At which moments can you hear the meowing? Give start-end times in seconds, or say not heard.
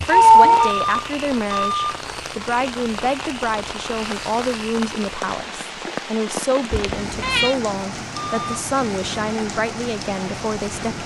0.1-0.7, 6.7-7.5.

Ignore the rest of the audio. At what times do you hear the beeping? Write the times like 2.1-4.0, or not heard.
0.6-1.9, 8.2-8.7.